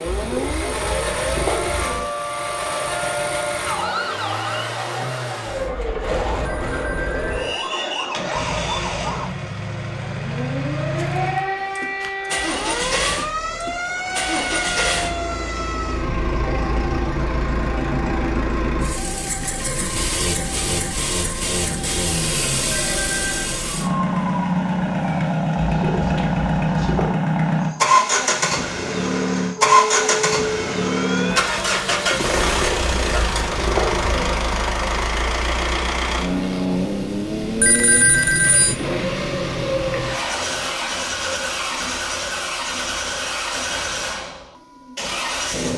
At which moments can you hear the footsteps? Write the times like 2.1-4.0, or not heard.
not heard.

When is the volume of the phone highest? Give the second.
38 s.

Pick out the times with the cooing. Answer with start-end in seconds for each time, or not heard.
0.1-2.0, 25.6-27.1, 32.4-34.4.